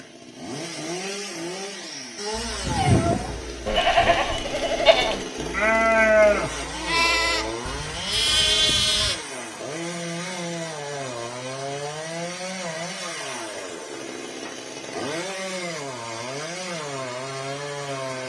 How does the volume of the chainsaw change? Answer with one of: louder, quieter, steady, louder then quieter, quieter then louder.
steady.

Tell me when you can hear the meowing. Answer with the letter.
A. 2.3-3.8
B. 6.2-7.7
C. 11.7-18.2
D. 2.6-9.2
A.